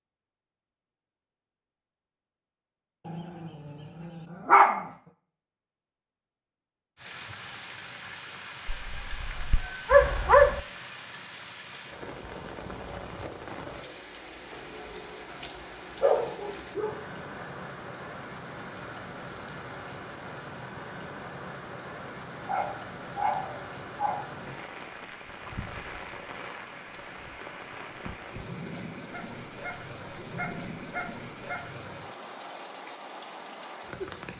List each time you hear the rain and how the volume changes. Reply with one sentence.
The rain can be heard from 7.0 to 34.3 s, at a steady volume.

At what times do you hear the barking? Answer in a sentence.
You can hear the barking from 3.0 to 4.9 s, from 8.7 to 10.6 s, from 16.0 to 17.0 s, from 22.1 to 24.2 s and from 29.1 to 31.7 s.